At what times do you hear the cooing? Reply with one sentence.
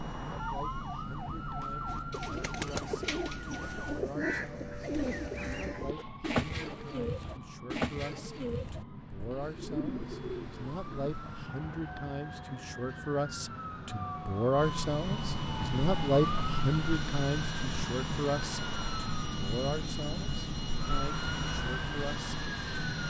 The cooing can be heard from 1.9 to 11.1 s.